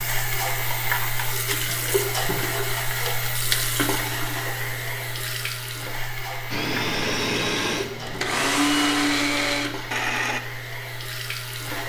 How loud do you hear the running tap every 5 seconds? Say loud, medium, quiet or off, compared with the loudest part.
loud, medium, medium.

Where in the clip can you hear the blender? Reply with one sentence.
You can hear the blender from 6.5 to 10.4 s.